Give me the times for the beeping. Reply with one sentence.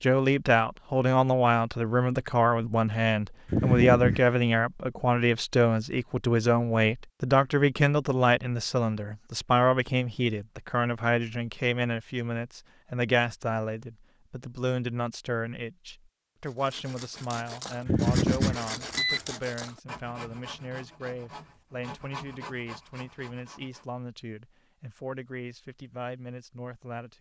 The beeping can be heard from 3.5 to 4.3 s and from 17.9 to 19.2 s.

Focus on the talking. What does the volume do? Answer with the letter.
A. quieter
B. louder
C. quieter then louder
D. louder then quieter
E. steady
A.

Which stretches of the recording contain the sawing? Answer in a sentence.
You can hear the sawing from 16.4 to 23.9 s.